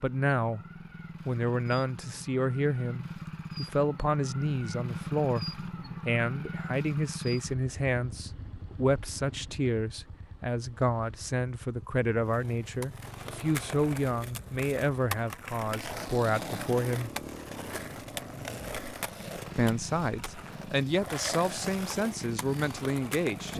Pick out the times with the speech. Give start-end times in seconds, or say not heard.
0.0-0.6, 1.2-17.1, 19.6-23.5.